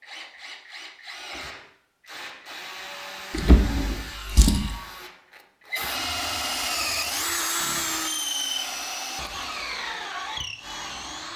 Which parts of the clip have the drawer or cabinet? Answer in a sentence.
You can hear the drawer or cabinet from 3.3 to 4.8 s.